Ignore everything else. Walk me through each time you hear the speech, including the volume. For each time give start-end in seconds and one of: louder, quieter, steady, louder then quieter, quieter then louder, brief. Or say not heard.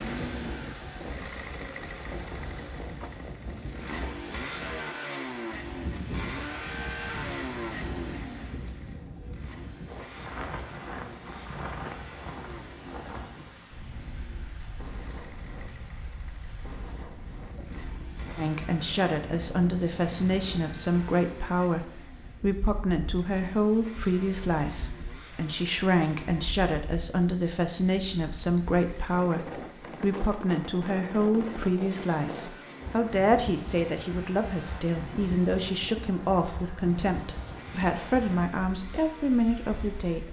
18.4-40.2 steady.